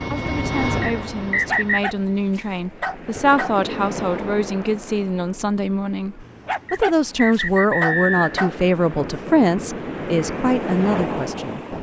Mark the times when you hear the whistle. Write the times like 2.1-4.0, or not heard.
0.8-1.9, 6.7-8.3.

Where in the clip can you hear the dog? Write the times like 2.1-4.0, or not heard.
1.3-3.5, 6.2-8.5.